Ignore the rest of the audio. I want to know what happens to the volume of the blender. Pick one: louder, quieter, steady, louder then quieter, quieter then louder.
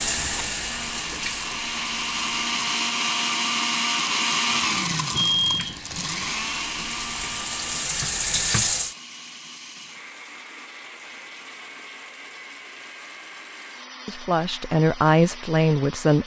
quieter.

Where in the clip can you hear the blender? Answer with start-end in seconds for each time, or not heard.
0.1-16.2.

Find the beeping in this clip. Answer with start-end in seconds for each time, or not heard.
5.2-5.8.